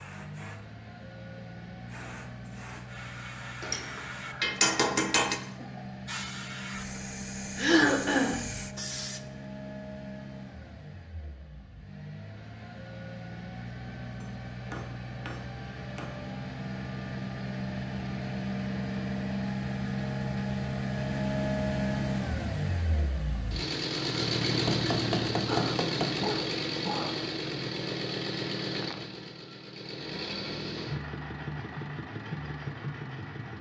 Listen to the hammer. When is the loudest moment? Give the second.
5 s.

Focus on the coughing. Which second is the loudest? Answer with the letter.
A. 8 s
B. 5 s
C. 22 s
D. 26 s
A.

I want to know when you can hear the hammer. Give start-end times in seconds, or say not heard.
3.6-5.4, 14.2-16.1, 24.6-26.2.